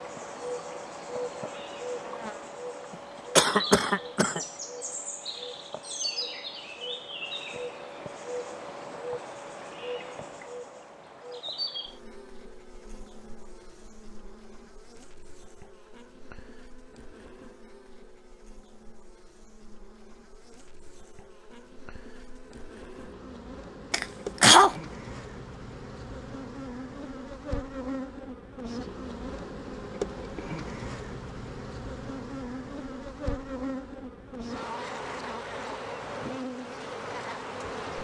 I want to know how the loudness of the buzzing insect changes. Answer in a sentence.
The loudness of the buzzing insect goes down, then up.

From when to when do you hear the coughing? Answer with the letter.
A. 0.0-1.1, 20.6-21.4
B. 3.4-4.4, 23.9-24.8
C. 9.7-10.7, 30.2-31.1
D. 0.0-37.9
B.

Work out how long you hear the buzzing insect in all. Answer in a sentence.
The buzzing insect can be heard for 38 seconds in total.